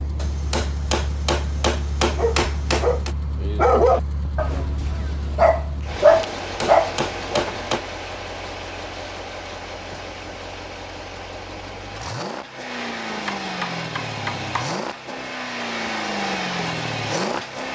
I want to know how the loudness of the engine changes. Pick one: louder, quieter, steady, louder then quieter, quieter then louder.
louder.